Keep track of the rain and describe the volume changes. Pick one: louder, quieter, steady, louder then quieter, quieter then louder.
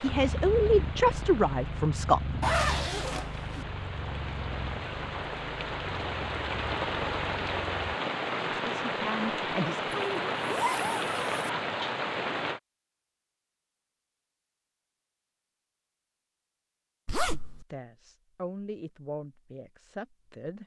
louder.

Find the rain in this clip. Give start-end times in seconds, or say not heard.
0.0-12.6.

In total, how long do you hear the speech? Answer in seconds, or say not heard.
7 s.